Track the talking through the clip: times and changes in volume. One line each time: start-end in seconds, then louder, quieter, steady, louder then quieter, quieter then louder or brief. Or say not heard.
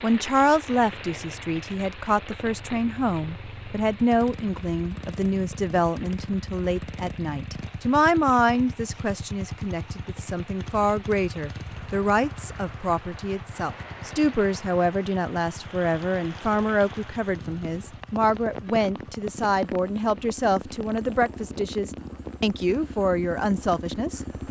0.0-24.2 steady.